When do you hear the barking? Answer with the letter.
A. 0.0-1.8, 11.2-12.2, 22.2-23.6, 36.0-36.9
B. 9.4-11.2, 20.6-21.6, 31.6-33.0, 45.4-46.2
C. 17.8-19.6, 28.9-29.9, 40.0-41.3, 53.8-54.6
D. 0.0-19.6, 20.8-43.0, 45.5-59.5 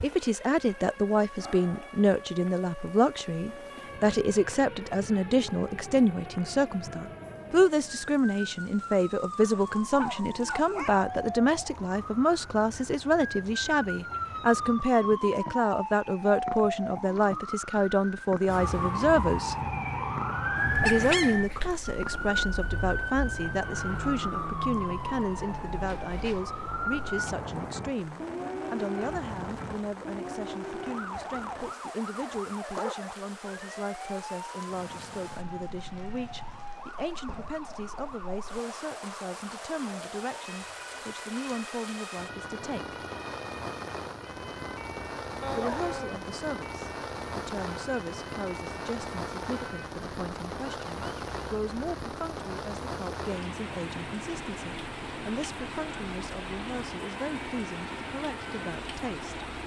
B.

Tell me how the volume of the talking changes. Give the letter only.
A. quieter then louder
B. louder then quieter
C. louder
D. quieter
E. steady
D.